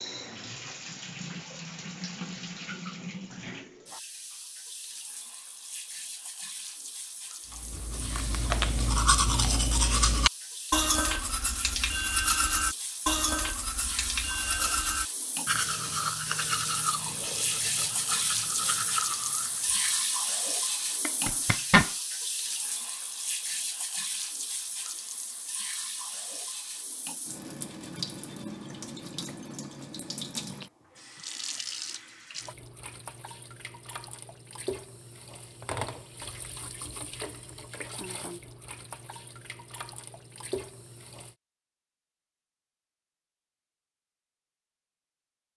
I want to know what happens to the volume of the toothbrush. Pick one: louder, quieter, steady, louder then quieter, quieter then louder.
quieter.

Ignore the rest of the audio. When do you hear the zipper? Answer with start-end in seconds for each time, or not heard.
21.0-21.9.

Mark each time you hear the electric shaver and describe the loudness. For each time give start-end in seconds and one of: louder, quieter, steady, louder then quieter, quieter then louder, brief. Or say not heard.
not heard.